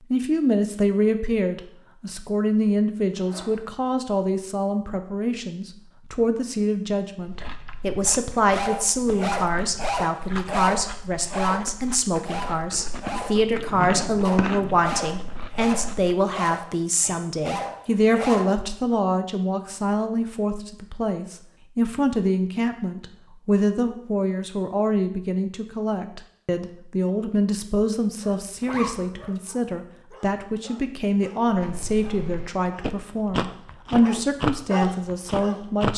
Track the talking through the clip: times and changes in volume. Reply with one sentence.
The talking can be heard from 0.1 to 35.9 s, at a steady volume.